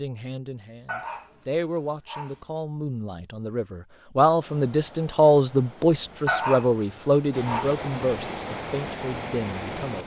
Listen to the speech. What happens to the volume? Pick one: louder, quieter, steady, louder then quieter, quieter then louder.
louder then quieter.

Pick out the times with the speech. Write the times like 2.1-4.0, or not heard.
0.0-10.0.